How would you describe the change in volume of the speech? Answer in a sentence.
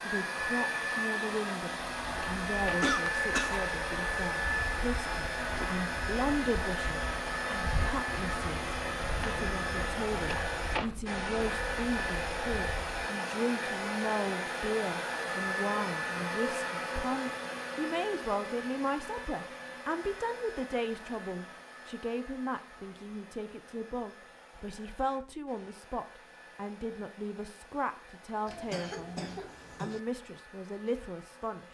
The loudness of the speech stays about the same.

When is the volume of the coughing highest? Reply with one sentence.
The volume of the coughing peaks at 3 seconds.